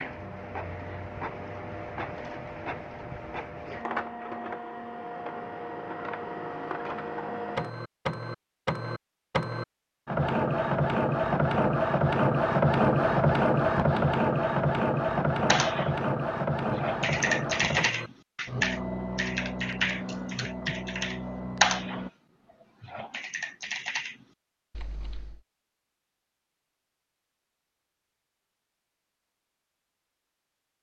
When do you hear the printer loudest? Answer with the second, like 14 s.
13 s.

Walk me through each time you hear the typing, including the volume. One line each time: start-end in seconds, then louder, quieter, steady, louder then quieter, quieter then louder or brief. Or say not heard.
15.4-15.9 brief
16.7-22.1 quieter then louder
22.8-25.4 brief.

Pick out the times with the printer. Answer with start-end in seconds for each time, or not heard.
0.0-22.1.